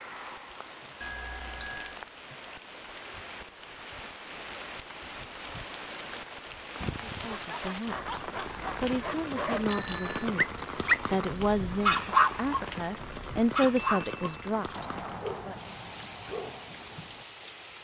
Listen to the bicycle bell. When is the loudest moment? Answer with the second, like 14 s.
10 s.